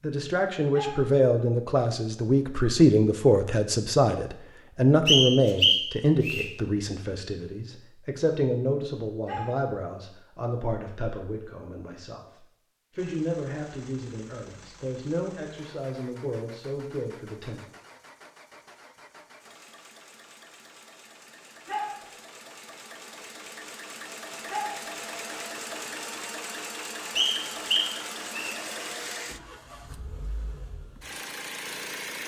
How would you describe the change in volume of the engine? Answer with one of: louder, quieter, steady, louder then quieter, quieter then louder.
louder.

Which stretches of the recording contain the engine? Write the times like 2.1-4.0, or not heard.
12.9-32.2.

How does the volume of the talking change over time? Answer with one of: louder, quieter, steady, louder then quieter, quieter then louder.
quieter.